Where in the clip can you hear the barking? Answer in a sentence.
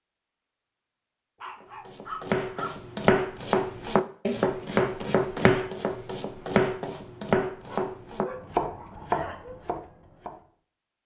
The barking can be heard from 1.4 to 2.7 s and from 7.6 to 9.6 s.